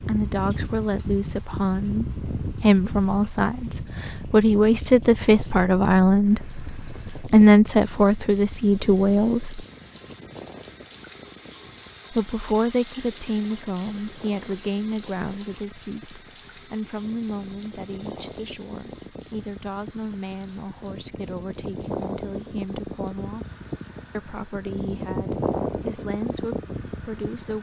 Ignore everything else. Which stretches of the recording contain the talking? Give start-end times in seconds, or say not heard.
0.0-9.7, 12.1-23.4, 24.1-27.5.